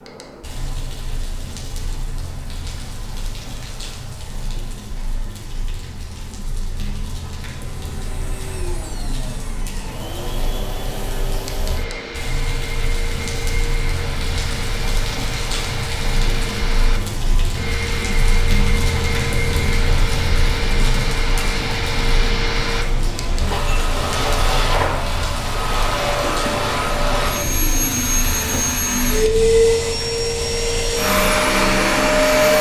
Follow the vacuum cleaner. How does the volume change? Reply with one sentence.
The loudness of the vacuum cleaner goes up.